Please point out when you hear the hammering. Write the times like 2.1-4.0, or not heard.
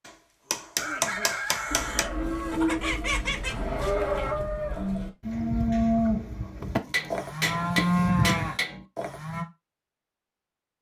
0.5-2.0, 6.8-8.8.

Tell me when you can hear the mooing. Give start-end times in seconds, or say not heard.
1.6-9.4.